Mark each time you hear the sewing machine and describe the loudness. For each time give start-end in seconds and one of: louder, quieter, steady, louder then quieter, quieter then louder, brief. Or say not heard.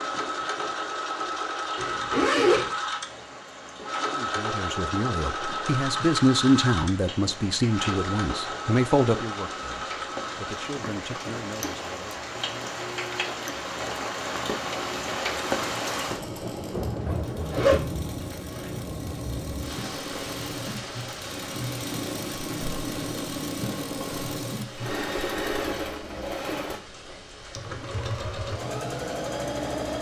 0.0-29.9 quieter then louder.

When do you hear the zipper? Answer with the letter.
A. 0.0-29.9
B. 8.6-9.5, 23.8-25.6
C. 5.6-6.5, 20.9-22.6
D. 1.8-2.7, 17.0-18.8
D.